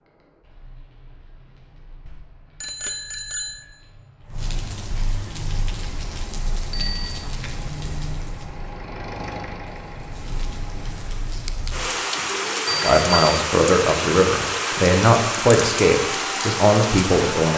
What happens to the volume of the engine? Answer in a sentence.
The loudness of the engine goes up, then down.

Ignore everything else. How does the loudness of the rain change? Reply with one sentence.
The loudness of the rain goes up.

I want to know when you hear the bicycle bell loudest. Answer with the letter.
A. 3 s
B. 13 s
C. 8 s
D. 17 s
B.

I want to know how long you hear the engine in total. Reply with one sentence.
You can hear the engine for 6 seconds altogether.